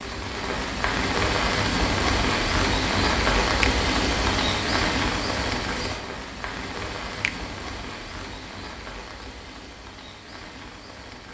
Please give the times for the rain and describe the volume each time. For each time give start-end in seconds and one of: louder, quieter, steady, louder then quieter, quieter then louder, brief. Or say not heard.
0.0-11.2 quieter.